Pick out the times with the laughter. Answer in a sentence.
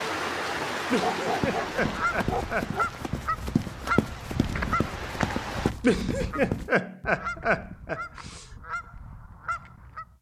You can hear the laughter from 0.9 to 2.7 s and from 5.8 to 8.4 s.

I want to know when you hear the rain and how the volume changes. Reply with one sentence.
The rain can be heard from 0.0 to 5.8 s, getting quieter then louder.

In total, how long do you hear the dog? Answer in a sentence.
The dog can be heard for 2 seconds in total.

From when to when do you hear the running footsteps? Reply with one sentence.
The running footsteps can be heard from 1.2 to 6.7 s.